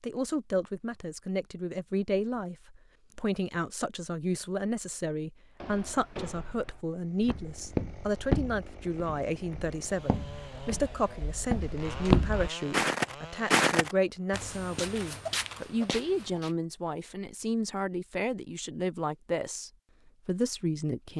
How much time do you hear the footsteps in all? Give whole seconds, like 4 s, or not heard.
11 s.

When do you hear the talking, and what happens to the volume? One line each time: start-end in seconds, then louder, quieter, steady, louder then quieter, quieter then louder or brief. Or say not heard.
0.0-21.1 steady.